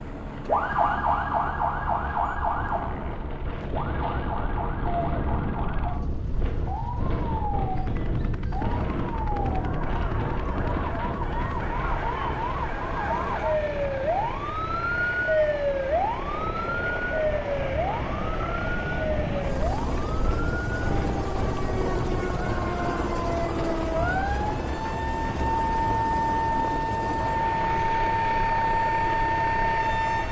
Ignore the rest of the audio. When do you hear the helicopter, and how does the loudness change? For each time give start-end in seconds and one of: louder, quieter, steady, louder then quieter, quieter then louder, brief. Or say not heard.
0.0-30.2 louder.